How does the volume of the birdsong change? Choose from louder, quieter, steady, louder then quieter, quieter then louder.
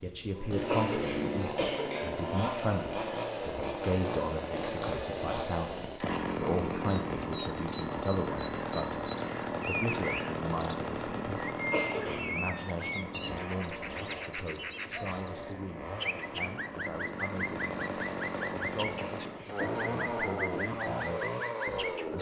steady.